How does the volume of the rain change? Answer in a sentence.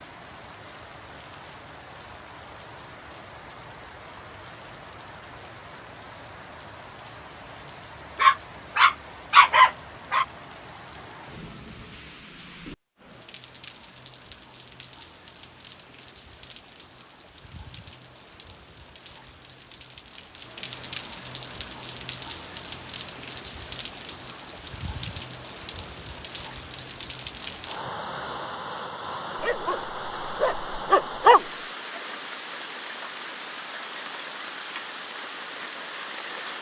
The loudness of the rain goes up.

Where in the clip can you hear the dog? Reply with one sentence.
You can hear the dog from 8.2 to 10.2 s and from 29.4 to 31.4 s.